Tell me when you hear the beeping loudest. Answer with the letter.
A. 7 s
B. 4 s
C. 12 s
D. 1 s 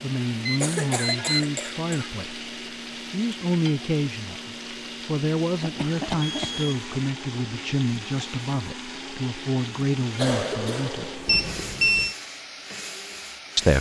C.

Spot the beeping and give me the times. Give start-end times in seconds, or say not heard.
0.5-1.4, 6.2-6.8, 11.2-12.2.